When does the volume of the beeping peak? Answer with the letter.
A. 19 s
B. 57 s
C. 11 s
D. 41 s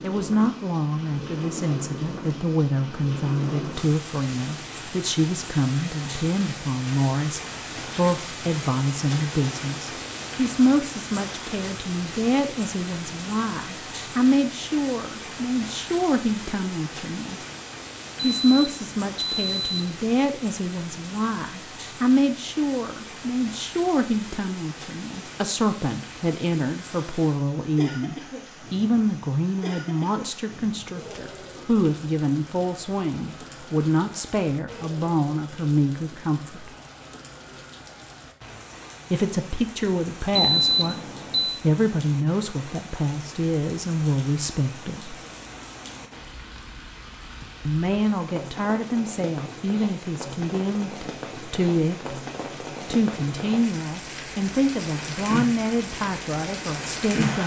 D.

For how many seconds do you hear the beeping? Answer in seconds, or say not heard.
3 s.